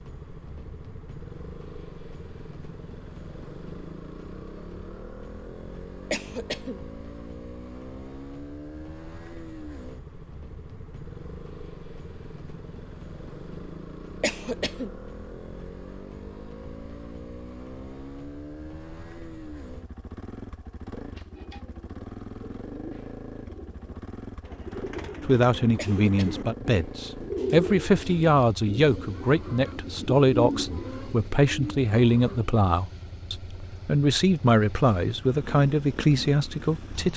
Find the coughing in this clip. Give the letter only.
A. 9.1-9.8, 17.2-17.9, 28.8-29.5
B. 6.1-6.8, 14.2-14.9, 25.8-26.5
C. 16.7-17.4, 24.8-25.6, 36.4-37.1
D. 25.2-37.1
B.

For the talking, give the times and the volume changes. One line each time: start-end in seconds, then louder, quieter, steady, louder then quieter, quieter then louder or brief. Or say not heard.
25.2-37.1 steady.